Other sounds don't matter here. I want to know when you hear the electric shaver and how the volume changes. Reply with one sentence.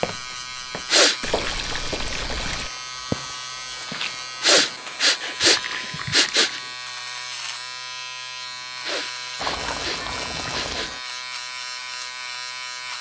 You can hear the electric shaver from 0.0 to 12.9 s, at a steady volume.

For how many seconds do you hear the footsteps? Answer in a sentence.
You can hear the footsteps for 5 seconds altogether.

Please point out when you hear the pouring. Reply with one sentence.
The pouring can be heard from 1.2 to 2.7 s, from 5.3 to 6.7 s and from 9.3 to 11.0 s.